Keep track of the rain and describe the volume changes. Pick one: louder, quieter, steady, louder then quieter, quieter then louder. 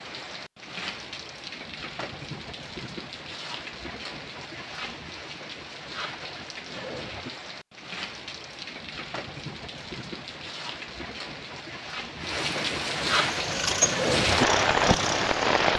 louder.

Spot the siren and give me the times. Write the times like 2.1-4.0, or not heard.
not heard.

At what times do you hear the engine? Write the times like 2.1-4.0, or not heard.
13.2-15.7.